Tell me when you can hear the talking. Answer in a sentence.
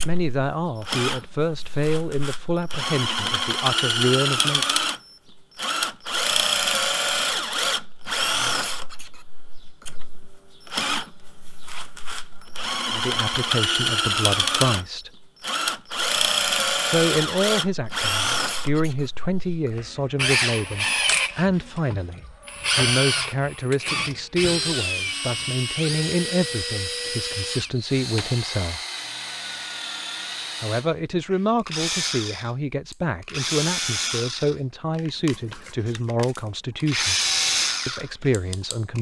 You can hear the talking from 0.0 to 4.7 s, from 12.9 to 15.1 s, from 16.9 to 28.8 s, from 30.6 to 37.1 s and from 37.9 to 38.9 s.